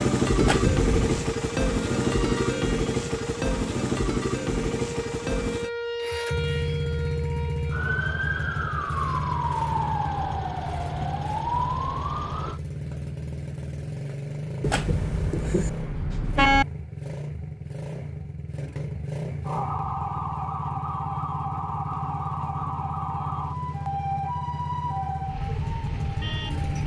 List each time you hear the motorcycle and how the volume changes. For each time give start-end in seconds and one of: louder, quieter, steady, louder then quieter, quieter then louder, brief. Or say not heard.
0.0-26.8 quieter.